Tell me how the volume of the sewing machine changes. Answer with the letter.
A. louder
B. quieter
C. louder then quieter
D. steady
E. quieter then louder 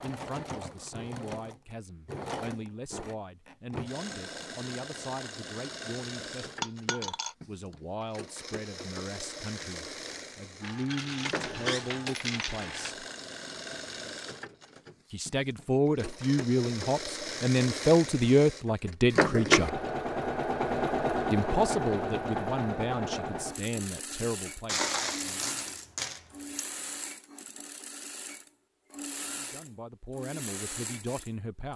C.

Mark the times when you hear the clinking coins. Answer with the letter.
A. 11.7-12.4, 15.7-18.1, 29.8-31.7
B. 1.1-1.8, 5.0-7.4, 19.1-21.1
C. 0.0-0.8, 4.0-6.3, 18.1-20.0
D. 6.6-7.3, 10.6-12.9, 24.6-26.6
D.